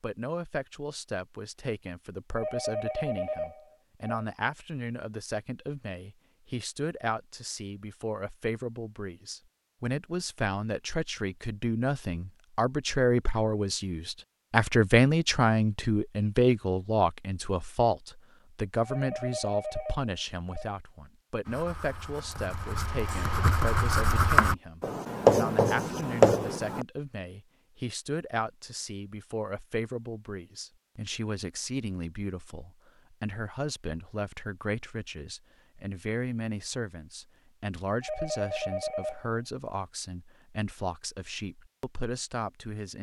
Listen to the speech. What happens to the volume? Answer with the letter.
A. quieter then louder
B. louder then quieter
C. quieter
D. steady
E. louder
B.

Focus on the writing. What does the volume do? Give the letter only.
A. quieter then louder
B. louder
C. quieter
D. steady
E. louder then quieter
B.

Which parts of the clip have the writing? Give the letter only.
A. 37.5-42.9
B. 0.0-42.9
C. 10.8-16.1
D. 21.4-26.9
D.